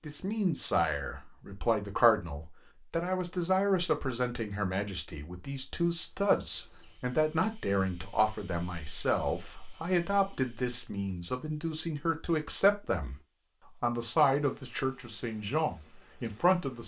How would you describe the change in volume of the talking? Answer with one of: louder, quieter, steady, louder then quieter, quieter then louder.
steady.